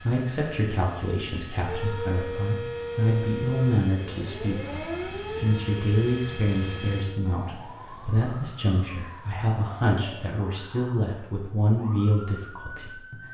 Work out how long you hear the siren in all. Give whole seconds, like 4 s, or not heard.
12 s.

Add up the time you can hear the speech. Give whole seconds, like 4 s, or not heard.
13 s.